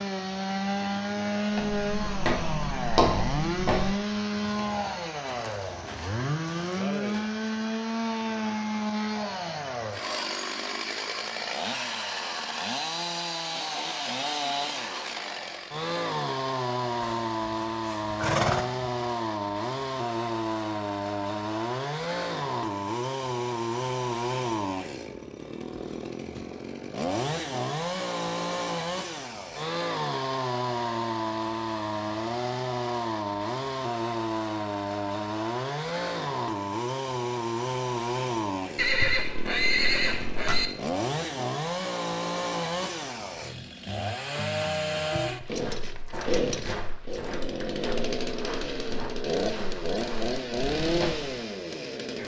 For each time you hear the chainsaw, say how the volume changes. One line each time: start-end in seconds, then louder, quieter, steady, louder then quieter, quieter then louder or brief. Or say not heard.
0.0-52.2 steady.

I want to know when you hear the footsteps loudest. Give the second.
3 s.